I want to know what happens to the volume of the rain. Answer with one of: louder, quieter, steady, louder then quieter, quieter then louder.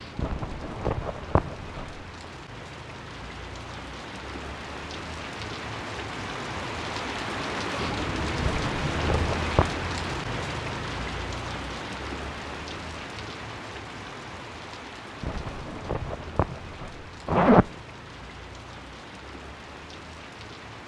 louder then quieter.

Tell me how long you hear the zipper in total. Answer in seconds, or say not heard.
6 s.